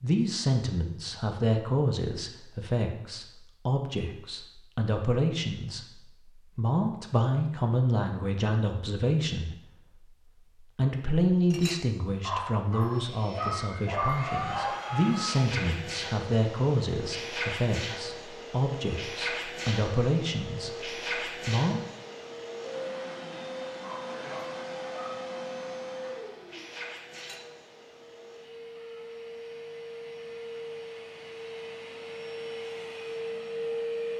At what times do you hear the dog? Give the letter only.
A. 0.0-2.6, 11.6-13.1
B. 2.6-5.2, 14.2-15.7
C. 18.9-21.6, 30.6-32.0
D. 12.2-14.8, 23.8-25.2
D.